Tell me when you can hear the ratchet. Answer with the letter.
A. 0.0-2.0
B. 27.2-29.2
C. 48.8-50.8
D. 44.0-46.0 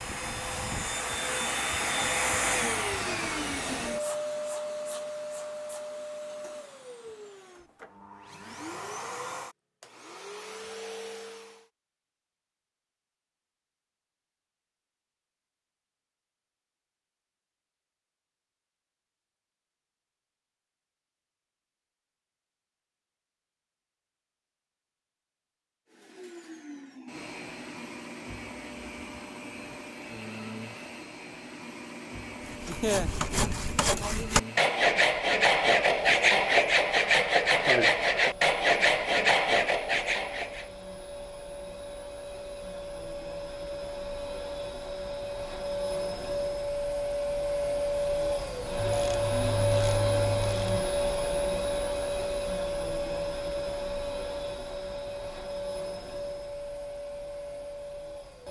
C.